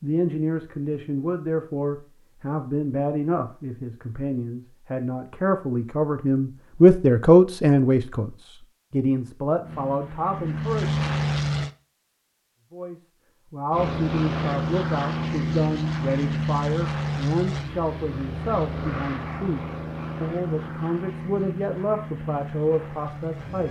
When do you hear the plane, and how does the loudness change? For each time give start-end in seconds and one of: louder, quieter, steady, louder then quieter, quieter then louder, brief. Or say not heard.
9.6-11.7 brief
13.7-23.6 quieter.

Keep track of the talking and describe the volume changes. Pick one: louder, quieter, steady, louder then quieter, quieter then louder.
louder then quieter.